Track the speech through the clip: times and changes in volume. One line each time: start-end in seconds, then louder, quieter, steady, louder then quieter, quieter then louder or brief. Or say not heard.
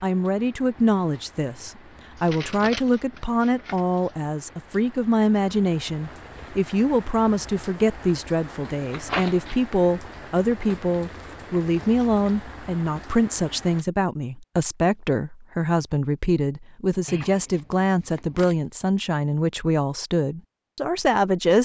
0.0-21.6 steady.